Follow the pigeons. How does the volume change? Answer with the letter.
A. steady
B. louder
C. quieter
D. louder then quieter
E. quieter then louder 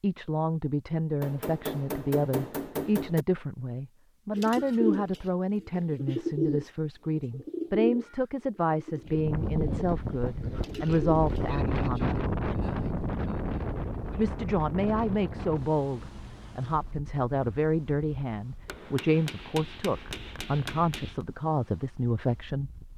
C.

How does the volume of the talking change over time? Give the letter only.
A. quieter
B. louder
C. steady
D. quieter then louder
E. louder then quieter
C.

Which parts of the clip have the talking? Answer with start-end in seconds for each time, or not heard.
0.0-12.2, 14.2-22.7.